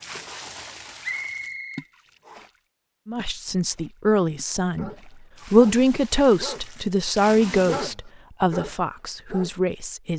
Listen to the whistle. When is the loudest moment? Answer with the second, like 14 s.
1 s.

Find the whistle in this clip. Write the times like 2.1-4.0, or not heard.
1.0-2.5.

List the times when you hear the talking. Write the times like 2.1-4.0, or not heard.
3.0-4.9, 5.5-10.1.